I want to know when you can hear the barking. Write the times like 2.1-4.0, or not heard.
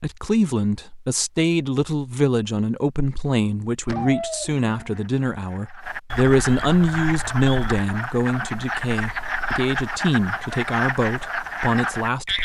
3.9-5.1.